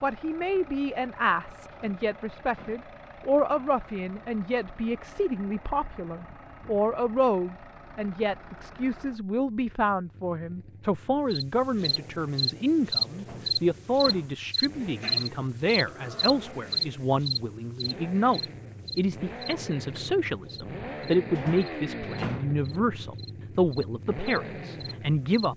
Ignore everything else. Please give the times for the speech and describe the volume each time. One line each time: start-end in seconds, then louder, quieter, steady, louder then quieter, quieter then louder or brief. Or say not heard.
0.0-25.5 steady.